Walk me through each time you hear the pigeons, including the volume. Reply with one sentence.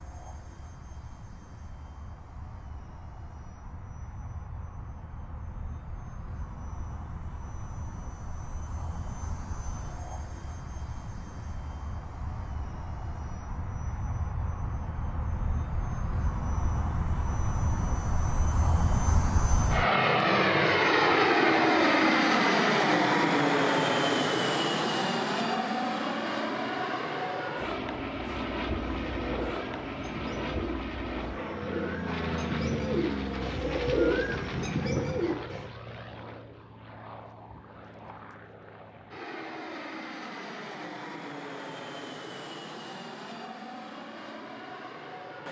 You can hear the pigeons from 28.2 to 35.7 s, getting louder.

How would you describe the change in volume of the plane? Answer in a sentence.
The volume of the plane goes up, then down.